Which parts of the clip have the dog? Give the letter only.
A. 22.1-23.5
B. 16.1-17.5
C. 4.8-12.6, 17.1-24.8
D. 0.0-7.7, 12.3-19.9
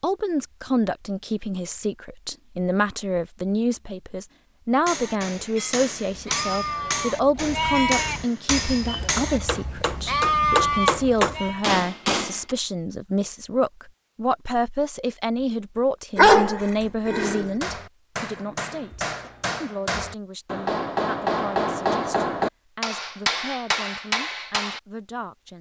B.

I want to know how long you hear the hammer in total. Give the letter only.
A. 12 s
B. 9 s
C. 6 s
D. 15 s
D.